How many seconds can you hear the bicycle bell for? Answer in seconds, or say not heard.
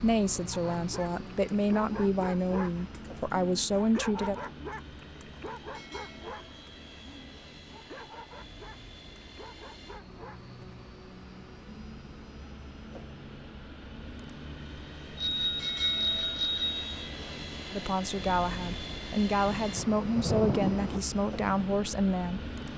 2 s.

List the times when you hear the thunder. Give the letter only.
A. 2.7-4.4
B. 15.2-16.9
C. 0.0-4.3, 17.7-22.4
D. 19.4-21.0
D.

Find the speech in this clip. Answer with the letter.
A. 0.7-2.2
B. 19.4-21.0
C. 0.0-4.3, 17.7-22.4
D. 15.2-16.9
C.